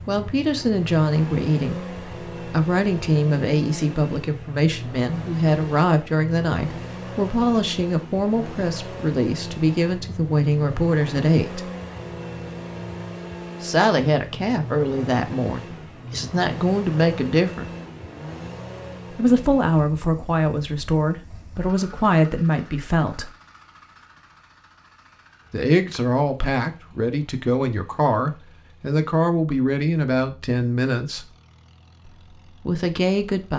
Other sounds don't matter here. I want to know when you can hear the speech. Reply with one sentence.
You can hear the speech from 0.1 to 11.7 s, from 13.6 to 17.6 s, from 19.1 to 23.3 s, from 25.5 to 31.2 s and from 32.0 to 33.5 s.